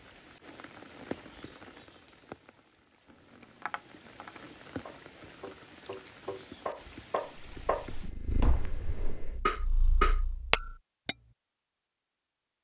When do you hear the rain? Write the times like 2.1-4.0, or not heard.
0.0-8.1.